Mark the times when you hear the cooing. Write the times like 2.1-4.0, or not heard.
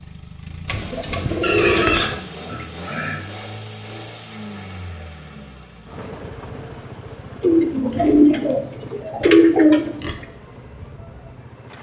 0.7-2.1, 7.4-10.2.